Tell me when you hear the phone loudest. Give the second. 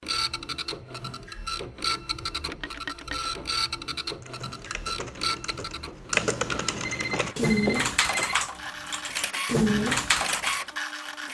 8 s.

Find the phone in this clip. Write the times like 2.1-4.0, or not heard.
2.5-3.3, 6.8-8.3.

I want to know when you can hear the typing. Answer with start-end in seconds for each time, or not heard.
4.2-10.7.